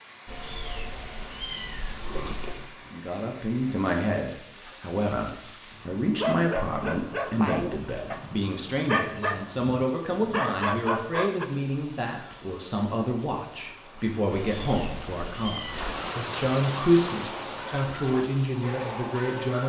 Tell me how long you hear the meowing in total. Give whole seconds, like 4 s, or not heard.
4 s.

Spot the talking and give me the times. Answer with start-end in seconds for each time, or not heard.
2.9-19.6.